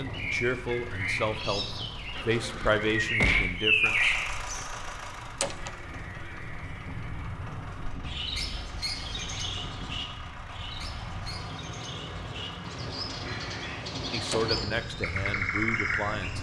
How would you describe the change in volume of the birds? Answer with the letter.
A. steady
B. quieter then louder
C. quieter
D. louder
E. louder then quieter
B.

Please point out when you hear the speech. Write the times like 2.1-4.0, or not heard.
0.0-4.7, 14.1-16.3.